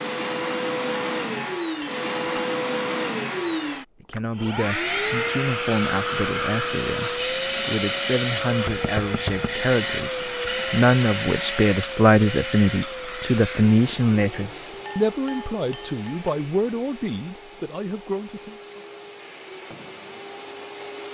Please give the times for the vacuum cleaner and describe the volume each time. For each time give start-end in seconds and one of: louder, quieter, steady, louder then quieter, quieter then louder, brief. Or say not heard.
0.0-21.1 quieter.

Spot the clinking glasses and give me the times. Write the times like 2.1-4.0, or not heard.
0.9-2.5, 14.8-16.4.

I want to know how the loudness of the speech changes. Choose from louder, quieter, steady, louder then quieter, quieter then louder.
louder then quieter.